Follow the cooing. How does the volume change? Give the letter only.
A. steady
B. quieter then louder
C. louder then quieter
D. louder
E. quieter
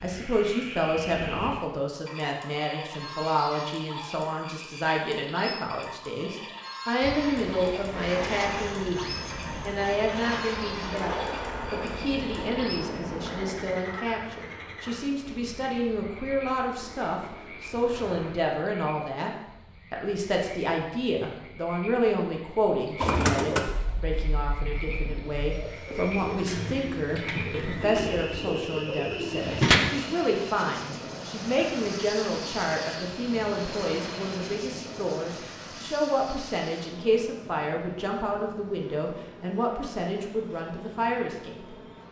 B.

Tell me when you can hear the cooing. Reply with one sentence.
The cooing can be heard from 22.8 to 29.9 s.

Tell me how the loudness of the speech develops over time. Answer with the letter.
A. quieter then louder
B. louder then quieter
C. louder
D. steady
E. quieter
D.